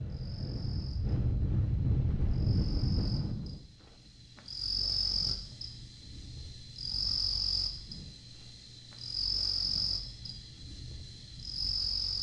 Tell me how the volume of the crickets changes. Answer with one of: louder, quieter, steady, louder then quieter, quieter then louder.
louder.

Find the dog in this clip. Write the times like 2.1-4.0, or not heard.
not heard.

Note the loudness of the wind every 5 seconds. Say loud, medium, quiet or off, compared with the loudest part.
loud, quiet, quiet.